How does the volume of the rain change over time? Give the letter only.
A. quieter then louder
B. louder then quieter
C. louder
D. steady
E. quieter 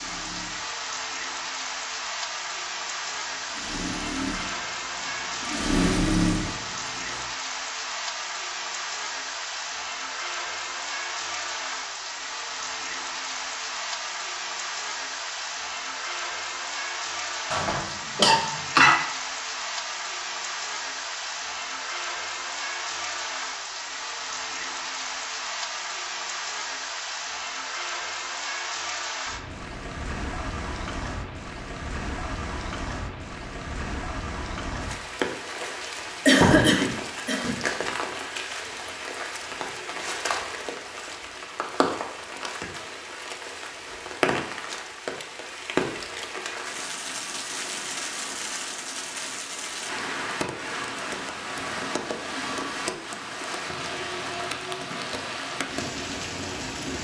D.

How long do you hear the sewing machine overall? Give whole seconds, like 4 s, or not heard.
7 s.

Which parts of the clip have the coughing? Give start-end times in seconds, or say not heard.
17.5-18.9, 36.2-37.5.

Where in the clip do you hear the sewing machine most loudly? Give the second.
6 s.